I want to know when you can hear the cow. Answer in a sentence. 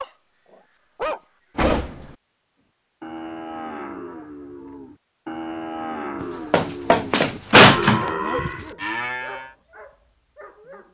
The cow can be heard from 3.0 to 9.6 s.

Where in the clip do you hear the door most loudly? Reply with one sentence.
The volume of the door peaks at 8 seconds.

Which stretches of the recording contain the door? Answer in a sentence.
You can hear the door from 1.6 to 2.0 s and from 6.2 to 8.1 s.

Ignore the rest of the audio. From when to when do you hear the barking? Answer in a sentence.
You can hear the barking from 0.0 to 1.9 s and from 7.3 to 10.9 s.